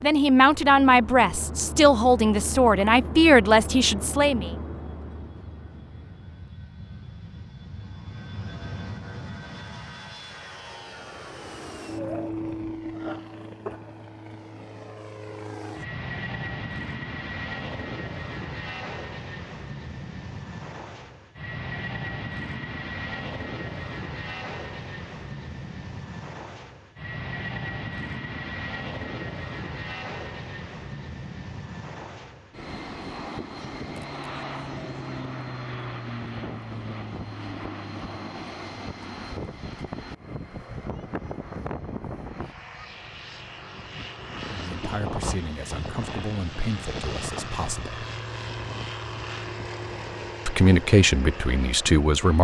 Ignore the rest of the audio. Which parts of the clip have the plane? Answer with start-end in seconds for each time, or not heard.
0.0-52.3.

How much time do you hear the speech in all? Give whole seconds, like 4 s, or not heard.
10 s.